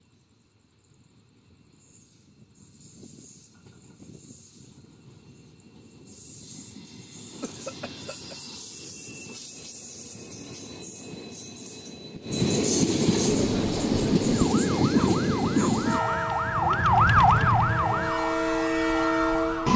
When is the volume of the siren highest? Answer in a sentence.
The volume of the siren peaks at 17 seconds.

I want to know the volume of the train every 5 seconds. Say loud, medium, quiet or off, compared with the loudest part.
quiet, quiet, loud, loud.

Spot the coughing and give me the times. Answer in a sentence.
The coughing can be heard from 7.4 to 8.3 s and from 14.9 to 15.8 s.